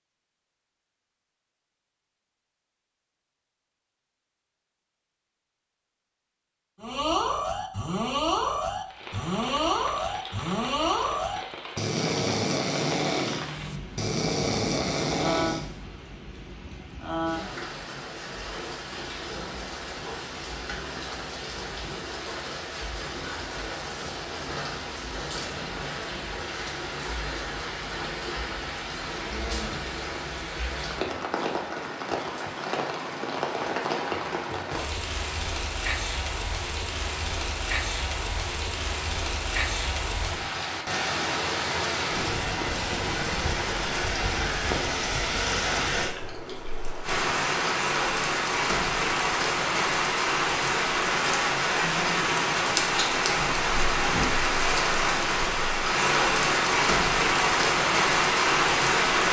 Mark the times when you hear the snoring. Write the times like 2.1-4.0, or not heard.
6.8-15.8.